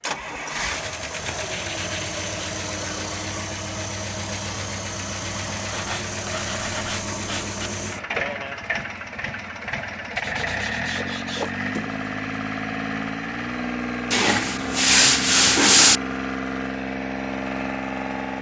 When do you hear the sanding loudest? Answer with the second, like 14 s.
16 s.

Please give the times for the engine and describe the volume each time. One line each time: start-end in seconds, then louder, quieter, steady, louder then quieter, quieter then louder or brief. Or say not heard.
0.0-18.3 steady.